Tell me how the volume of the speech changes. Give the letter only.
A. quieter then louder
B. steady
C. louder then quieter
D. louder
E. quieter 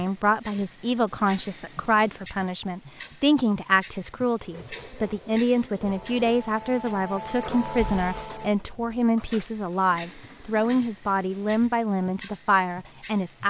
B.